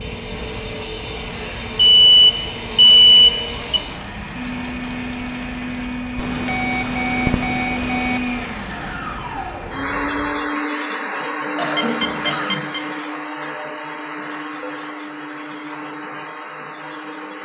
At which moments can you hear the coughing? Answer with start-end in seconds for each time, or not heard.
11.1-12.7.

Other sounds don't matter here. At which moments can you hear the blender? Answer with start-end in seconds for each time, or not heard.
0.0-17.4.